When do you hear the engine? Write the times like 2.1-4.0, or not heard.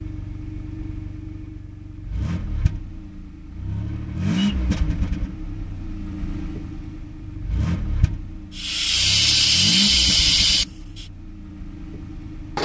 0.0-12.5.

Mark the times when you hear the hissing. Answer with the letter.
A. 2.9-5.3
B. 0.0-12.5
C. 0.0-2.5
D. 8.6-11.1
D.